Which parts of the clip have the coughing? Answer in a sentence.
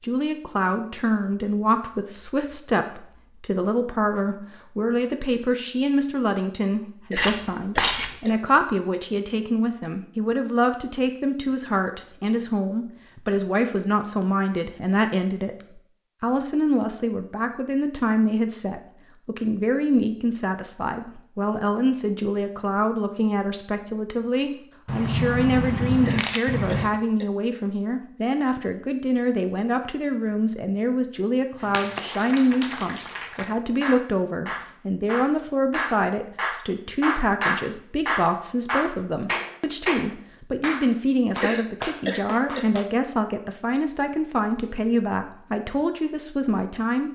The coughing can be heard from 7.1 to 8.4 s, from 26.1 to 27.3 s and from 41.4 to 42.8 s.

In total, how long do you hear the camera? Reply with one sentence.
You can hear the camera for 3 seconds altogether.